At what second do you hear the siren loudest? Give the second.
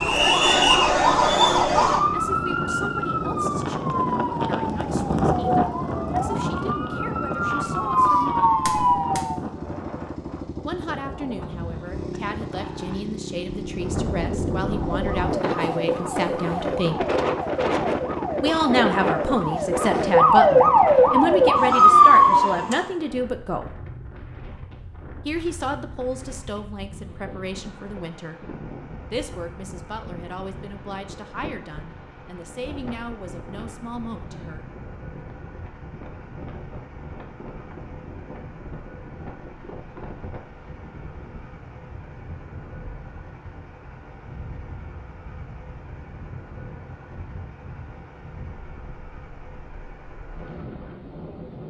22 s.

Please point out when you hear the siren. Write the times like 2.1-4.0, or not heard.
0.0-9.3, 14.6-22.9.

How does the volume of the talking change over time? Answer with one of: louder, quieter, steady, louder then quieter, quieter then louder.
louder then quieter.